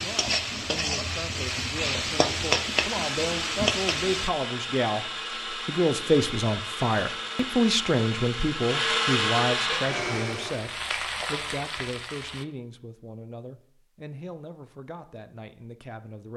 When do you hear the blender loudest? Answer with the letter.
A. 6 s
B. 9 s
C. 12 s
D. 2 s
B.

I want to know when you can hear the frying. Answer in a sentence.
The frying can be heard from 0.0 to 4.3 s and from 9.7 to 12.4 s.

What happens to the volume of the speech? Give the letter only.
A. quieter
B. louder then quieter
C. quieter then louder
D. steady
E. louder
B.